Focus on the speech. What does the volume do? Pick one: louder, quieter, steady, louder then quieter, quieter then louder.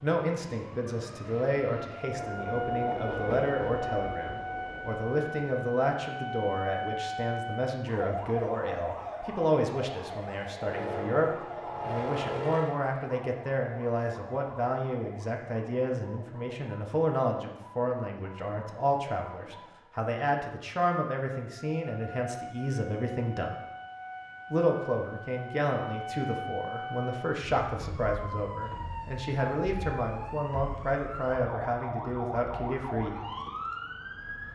steady.